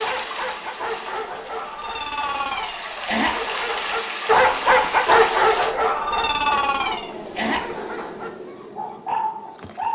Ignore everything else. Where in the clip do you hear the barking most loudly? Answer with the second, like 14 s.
5 s.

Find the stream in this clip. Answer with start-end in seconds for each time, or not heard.
0.0-5.8.